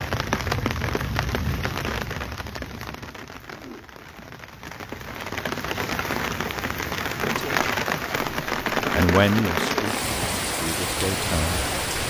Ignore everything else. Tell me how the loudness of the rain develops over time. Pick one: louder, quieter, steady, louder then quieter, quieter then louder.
quieter then louder.